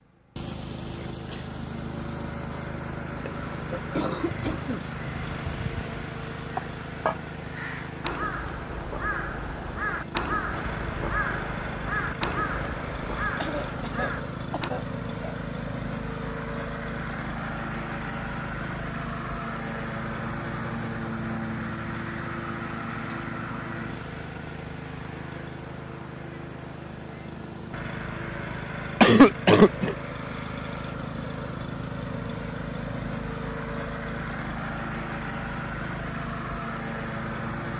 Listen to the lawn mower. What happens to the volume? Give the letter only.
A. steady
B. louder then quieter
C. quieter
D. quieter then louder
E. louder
A.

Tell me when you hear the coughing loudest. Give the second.
29 s.